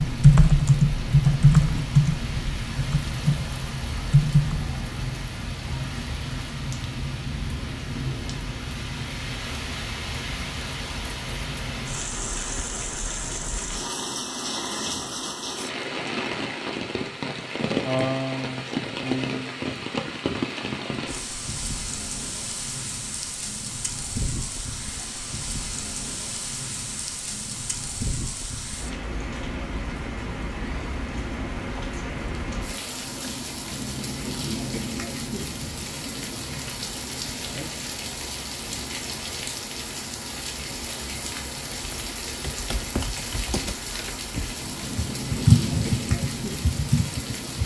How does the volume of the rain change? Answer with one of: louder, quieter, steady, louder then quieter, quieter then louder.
steady.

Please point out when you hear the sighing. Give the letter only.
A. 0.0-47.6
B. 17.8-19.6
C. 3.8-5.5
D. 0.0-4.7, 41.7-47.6
B.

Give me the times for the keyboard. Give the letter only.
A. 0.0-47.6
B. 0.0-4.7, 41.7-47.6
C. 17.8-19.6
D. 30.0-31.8
B.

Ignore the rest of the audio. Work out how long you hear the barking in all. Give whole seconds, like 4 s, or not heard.
not heard.